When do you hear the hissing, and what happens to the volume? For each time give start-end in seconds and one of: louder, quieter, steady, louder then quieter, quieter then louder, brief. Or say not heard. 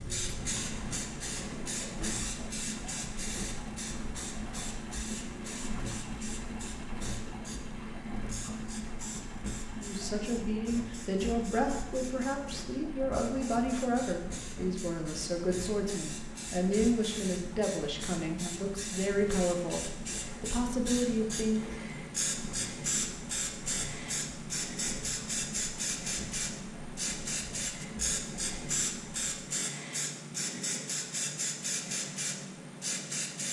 0.0-33.4 quieter then louder.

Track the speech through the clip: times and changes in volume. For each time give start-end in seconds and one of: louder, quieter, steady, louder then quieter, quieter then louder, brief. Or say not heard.
9.8-21.8 steady.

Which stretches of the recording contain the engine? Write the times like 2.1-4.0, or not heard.
0.0-29.4.